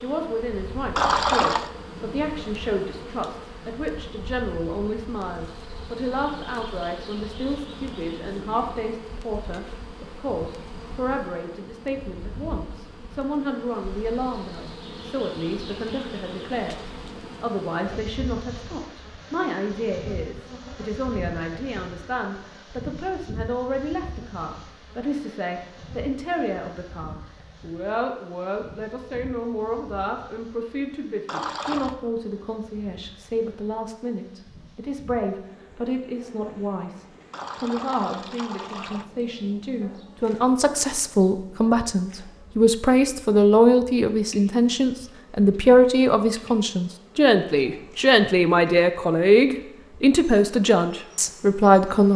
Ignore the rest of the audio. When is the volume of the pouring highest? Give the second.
1 s.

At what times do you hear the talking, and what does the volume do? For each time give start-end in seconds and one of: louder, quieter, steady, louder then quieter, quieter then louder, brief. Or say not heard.
0.0-16.8 steady
17.4-52.1 louder.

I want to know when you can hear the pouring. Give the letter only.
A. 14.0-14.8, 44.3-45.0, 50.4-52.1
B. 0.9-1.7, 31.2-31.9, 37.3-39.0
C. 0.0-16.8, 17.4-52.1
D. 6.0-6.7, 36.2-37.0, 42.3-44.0
B.